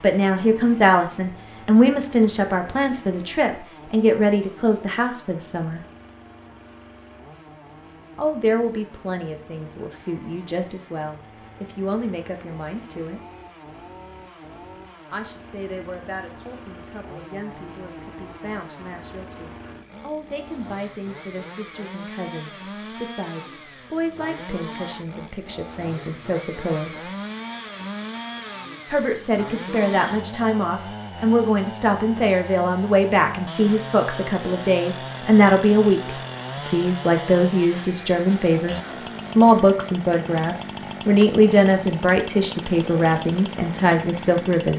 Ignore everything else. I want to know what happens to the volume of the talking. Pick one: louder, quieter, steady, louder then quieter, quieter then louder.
quieter then louder.